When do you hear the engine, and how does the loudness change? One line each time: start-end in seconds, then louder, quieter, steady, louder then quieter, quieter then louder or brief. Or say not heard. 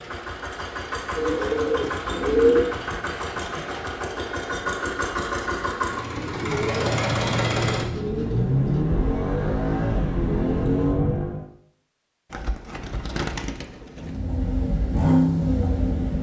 0.0-11.4 louder
13.9-16.1 brief.